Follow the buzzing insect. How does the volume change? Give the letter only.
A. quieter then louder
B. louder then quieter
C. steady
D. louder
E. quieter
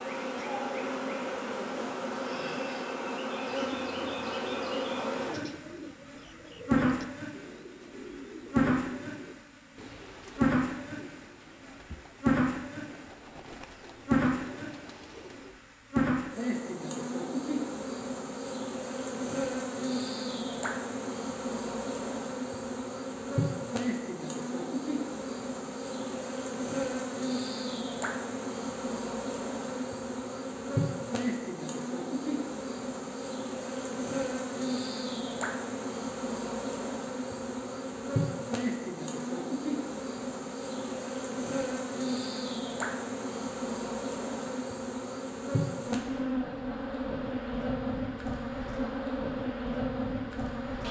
C.